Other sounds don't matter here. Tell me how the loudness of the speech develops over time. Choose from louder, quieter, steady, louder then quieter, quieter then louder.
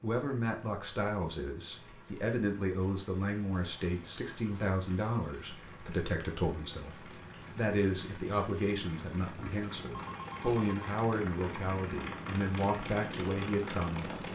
steady.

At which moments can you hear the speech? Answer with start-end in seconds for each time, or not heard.
0.0-14.1.